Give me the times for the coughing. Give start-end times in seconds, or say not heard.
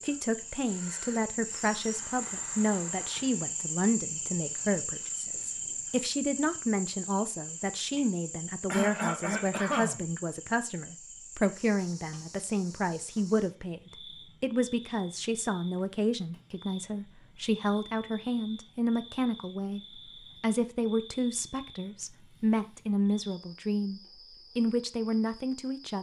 8.7-10.6.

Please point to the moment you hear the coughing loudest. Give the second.
9 s.